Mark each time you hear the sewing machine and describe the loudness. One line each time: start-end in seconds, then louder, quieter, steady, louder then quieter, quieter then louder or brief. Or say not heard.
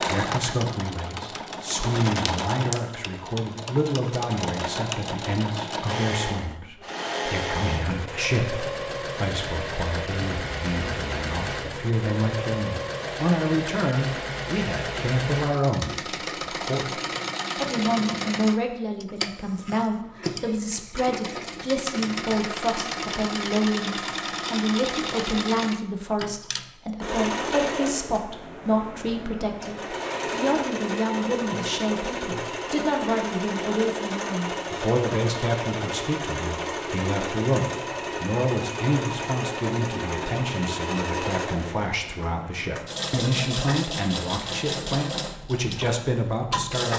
0.0-46.9 steady.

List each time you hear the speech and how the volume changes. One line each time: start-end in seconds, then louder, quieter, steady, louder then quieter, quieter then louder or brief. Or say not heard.
0.0-46.9 steady.